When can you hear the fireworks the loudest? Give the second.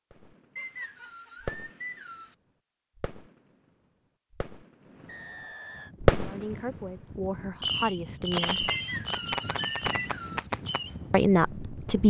6 s.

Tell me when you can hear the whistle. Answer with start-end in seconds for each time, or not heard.
0.6-2.4, 5.0-6.0, 8.7-10.4.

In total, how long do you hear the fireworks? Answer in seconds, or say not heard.
8 s.